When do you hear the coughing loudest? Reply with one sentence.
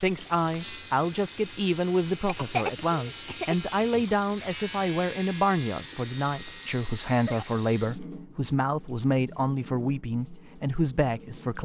The loudest moment of the coughing is at 3 seconds.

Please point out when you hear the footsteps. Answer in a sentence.
The footsteps can't be heard in this clip.